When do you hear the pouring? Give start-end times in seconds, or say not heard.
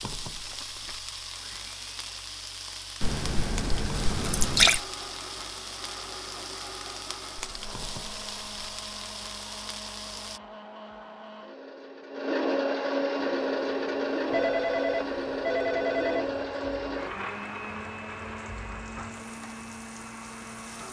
3.0-4.8.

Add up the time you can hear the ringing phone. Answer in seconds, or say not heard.
2 s.